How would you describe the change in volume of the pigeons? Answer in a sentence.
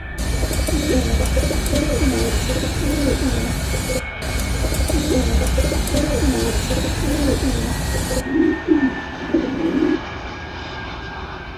The volume of the pigeons stays about the same.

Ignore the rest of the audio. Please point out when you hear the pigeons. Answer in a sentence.
The pigeons can be heard from 0.1 to 10.0 s.